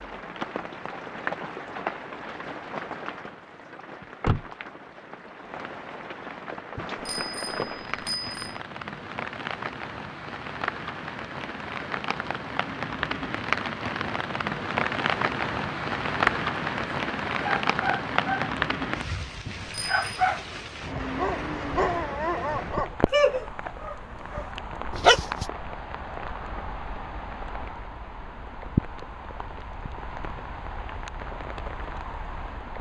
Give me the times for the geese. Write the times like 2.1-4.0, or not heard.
not heard.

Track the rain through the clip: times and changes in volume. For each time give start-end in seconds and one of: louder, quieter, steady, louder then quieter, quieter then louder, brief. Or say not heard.
0.0-32.7 louder then quieter.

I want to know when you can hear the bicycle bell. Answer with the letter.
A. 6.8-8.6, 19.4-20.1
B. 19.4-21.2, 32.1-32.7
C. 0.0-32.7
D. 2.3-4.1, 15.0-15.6
A.